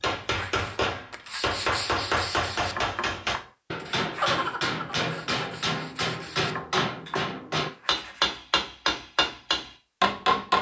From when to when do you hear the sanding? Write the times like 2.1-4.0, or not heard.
0.2-8.4.